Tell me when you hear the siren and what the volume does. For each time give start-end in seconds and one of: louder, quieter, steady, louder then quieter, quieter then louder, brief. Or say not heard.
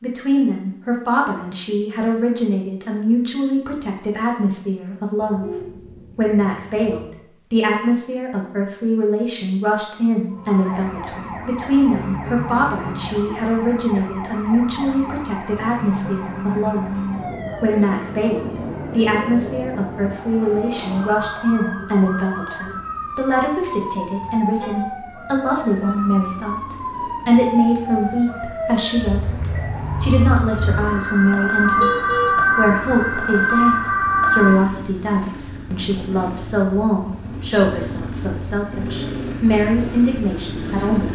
10.3-34.6 louder.